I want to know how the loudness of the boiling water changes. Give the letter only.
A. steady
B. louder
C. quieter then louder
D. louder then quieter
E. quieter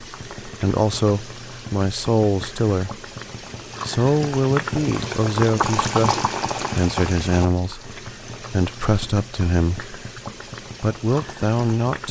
D.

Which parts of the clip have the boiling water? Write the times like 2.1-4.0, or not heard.
0.0-12.0.